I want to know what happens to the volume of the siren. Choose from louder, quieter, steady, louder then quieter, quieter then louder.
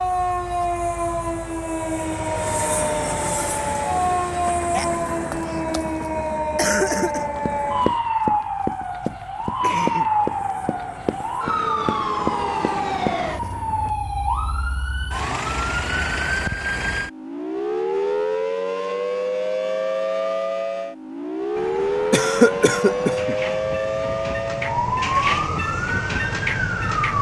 steady.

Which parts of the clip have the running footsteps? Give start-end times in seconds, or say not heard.
7.0-13.4.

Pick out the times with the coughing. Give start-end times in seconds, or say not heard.
4.7-7.2, 9.4-10.1, 22.1-23.4.